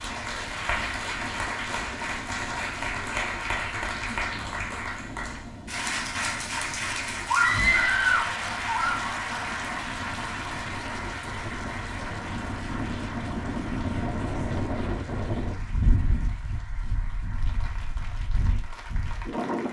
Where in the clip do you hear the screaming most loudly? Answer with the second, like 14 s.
8 s.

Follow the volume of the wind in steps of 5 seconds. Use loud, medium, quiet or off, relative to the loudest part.
medium, medium, loud, loud.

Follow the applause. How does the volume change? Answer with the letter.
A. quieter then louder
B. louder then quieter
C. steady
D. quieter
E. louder
D.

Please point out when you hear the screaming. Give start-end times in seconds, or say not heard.
7.2-9.0.